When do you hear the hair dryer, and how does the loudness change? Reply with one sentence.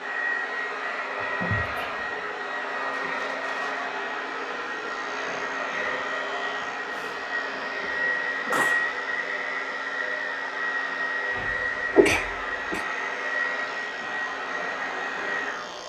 You can hear the hair dryer from 0.0 to 15.8 s, at a steady volume.